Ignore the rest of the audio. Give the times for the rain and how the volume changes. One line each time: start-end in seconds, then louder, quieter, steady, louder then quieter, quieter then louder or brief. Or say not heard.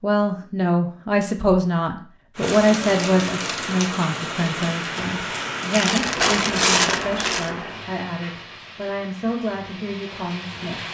2.4-10.9 quieter.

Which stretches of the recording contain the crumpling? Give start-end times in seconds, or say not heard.
2.4-3.8, 5.7-7.5.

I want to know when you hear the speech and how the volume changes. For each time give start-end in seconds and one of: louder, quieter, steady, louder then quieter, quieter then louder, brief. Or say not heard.
0.0-10.8 quieter.